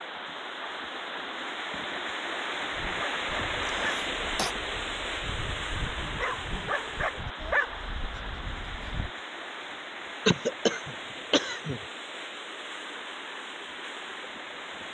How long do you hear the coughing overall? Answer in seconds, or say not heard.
3 s.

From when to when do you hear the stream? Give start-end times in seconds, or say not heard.
0.0-14.8.